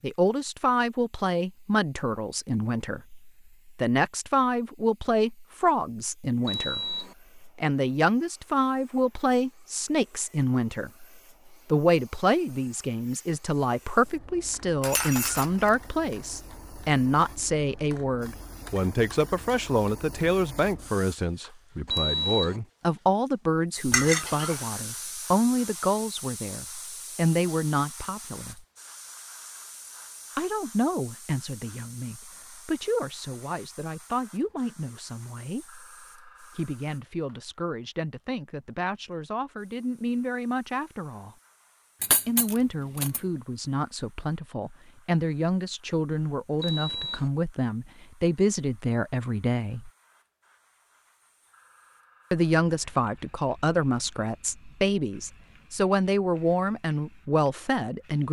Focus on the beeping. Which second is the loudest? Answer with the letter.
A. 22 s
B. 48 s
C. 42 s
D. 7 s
A.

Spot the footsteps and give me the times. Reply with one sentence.
You can't hear the footsteps here.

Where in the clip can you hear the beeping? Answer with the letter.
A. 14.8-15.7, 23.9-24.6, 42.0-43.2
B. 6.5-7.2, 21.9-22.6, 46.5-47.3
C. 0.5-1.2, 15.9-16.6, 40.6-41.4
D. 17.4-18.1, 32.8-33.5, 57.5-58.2
B.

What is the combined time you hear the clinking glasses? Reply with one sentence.
The clinking glasses can be heard for 3 seconds in total.